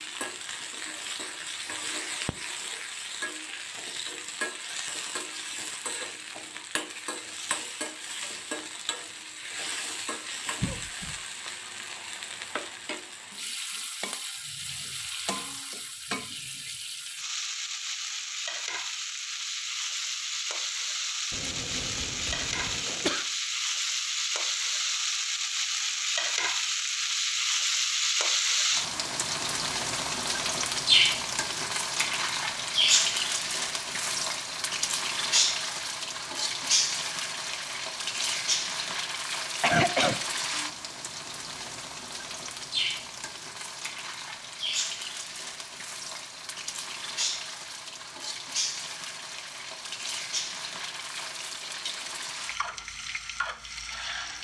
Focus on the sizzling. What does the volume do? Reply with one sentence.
The loudness of the sizzling goes up, then down.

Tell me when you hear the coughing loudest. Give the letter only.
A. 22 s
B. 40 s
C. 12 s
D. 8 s
B.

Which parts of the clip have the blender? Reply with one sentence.
You can't hear the blender here.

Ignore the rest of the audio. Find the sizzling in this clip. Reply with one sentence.
The sizzling can be heard from 0.0 to 54.3 s.